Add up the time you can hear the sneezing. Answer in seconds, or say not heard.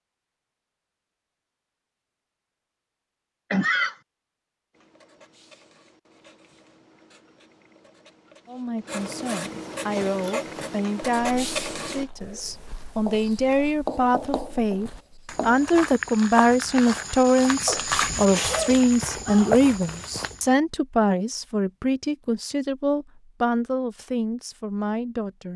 2 s.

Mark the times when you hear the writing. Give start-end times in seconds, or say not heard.
4.7-15.7.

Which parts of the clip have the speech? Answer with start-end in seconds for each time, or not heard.
8.4-25.5.